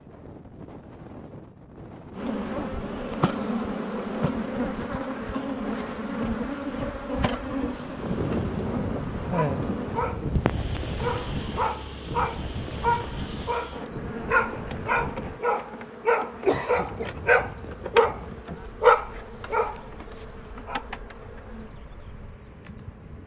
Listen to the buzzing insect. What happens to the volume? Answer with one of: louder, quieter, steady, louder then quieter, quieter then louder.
quieter.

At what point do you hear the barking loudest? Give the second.
19 s.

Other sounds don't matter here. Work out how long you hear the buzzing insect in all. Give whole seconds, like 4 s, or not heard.
21 s.